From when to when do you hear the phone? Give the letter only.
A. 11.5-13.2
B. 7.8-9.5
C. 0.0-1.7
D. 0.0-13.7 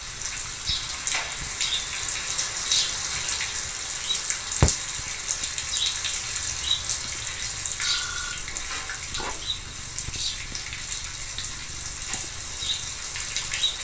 B.